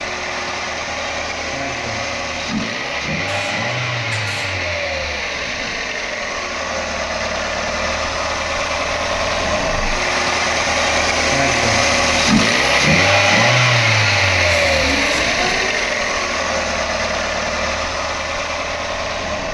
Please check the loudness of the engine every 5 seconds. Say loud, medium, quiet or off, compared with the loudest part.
medium, medium, loud, medium.